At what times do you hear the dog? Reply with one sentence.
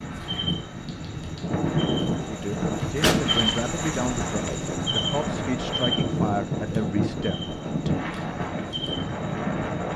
The dog can't be heard in this clip.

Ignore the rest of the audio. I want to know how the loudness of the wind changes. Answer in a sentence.
The volume of the wind stays about the same.